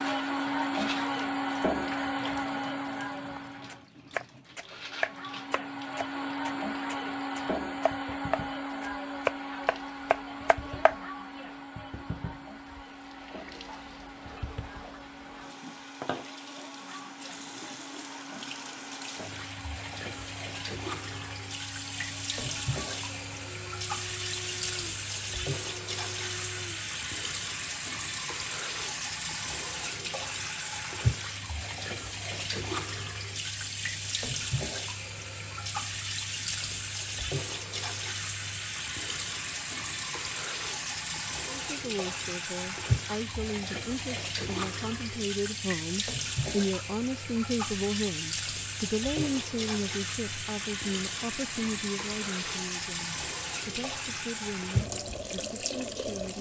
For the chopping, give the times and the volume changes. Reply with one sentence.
The chopping can be heard from 3.2 to 10.9 s, getting quieter then louder.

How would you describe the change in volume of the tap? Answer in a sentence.
The loudness of the tap goes up.